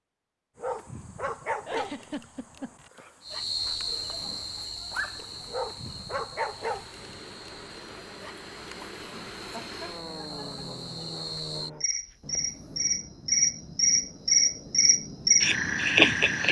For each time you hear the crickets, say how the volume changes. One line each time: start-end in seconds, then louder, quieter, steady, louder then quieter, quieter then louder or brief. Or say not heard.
3.2-16.4 quieter then louder.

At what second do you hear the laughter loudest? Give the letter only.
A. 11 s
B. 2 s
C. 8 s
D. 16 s
B.